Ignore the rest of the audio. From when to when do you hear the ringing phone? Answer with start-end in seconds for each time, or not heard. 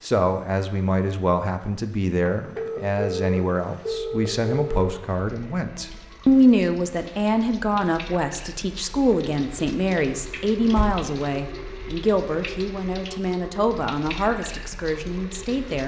2.5-5.0.